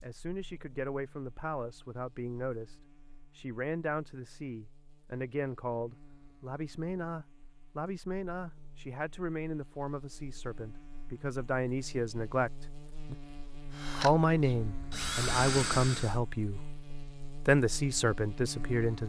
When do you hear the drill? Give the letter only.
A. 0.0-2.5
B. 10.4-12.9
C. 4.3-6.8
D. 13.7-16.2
D.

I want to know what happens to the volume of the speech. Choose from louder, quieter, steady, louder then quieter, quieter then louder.
louder.